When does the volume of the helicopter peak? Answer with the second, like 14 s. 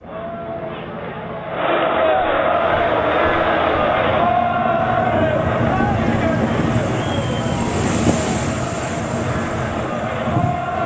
6 s.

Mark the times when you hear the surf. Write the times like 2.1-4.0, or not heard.
2.5-10.8.